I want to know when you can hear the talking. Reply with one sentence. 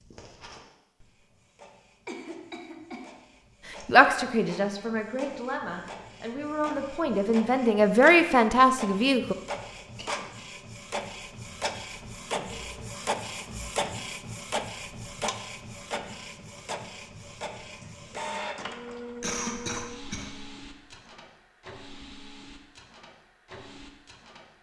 The talking can be heard from 3.9 to 9.3 s.